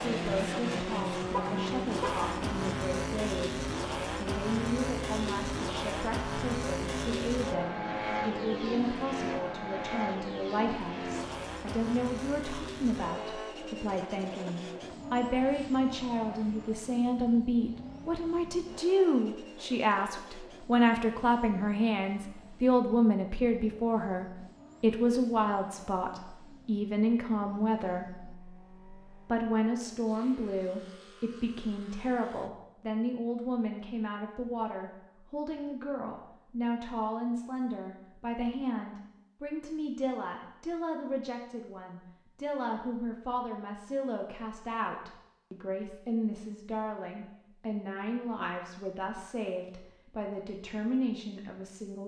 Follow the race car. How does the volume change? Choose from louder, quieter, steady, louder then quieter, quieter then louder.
quieter.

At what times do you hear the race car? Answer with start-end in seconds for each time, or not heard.
0.0-32.5.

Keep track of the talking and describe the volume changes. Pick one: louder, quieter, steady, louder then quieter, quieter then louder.
louder then quieter.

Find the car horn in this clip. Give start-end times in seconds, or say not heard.
1.3-2.5.